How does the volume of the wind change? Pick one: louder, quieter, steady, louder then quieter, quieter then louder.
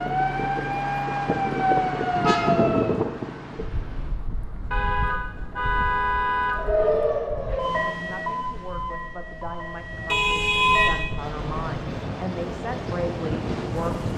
quieter then louder.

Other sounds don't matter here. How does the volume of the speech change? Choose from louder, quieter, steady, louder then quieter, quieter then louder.
louder.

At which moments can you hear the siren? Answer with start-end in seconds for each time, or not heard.
0.0-3.0, 6.5-11.1.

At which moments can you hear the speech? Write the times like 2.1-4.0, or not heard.
7.9-14.1.